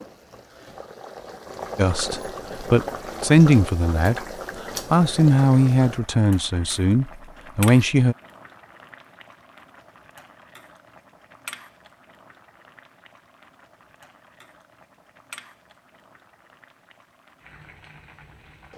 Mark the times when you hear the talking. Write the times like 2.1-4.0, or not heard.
1.8-8.2.